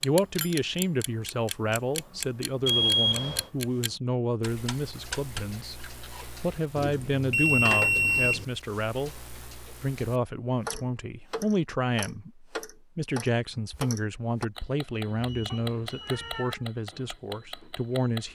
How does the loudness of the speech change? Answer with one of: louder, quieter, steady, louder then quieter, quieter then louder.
steady.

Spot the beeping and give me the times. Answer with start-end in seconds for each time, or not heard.
2.6-3.5, 6.8-8.4, 15.2-16.4.